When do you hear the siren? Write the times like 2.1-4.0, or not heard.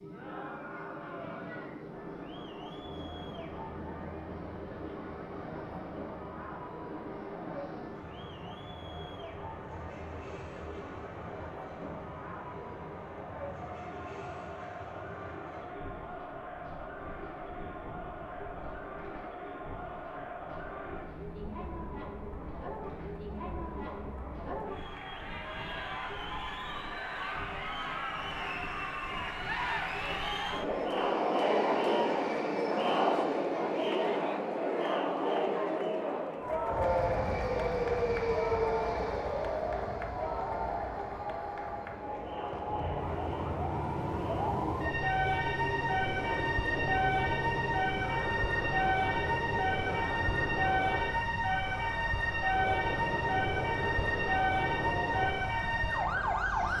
36.7-56.7.